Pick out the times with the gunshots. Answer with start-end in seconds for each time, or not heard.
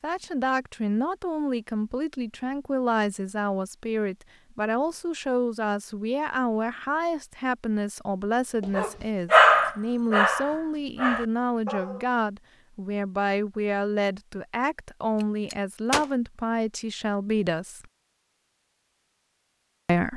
15.2-16.1.